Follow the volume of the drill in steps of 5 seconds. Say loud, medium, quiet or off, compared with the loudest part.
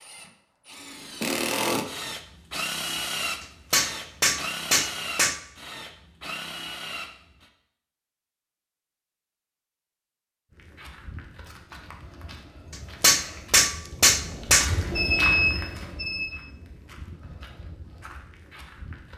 loud, medium, off, off.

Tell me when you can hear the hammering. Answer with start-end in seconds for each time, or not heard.
3.4-5.4, 12.7-14.7.